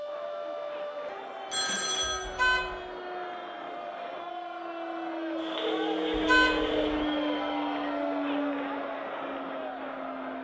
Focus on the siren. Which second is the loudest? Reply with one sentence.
The volume of the siren peaks at 7 seconds.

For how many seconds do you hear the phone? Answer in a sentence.
The phone can be heard for 2 seconds in total.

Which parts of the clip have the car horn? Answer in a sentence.
You can hear the car horn from 2.2 to 2.8 s and from 6.1 to 7.0 s.